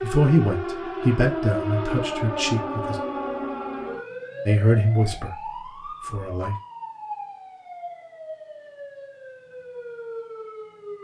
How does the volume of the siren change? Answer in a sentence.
The volume of the siren goes down.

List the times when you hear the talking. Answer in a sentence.
You can hear the talking from 0.0 to 3.0 s, from 4.5 to 5.4 s and from 6.0 to 6.5 s.